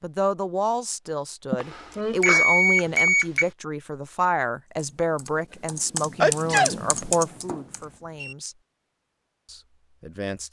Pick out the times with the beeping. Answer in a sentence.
The beeping can be heard from 1.6 to 3.5 s and from 7.3 to 8.3 s.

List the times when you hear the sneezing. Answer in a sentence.
The sneezing can be heard from 1.5 to 2.9 s and from 6.2 to 6.8 s.